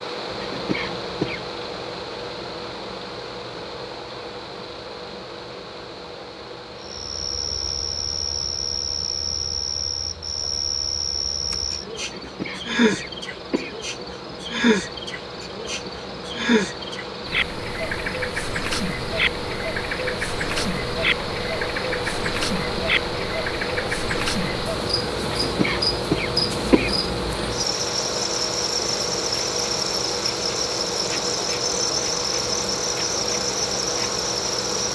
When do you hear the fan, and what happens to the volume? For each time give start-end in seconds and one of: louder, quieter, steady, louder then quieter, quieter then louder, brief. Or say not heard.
0.0-34.9 quieter then louder.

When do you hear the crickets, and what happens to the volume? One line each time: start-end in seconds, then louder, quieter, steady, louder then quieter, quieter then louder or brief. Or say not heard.
6.8-34.9 steady.